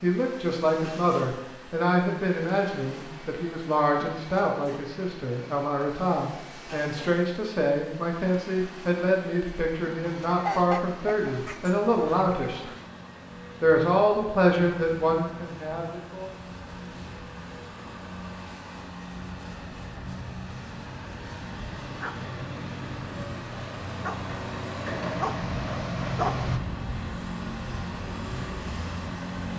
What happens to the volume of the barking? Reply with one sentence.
The volume of the barking goes up.